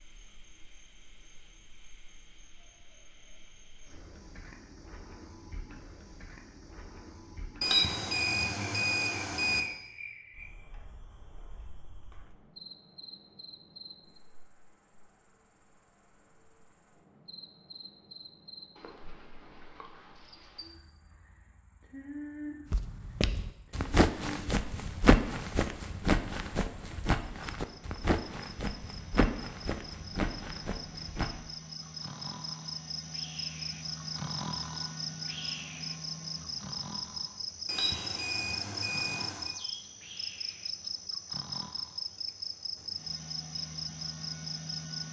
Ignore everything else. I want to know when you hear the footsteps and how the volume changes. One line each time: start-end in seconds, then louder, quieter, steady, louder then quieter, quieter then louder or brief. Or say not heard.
22.7-31.4 quieter.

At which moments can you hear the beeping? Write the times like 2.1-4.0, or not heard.
7.6-9.6, 37.6-39.5.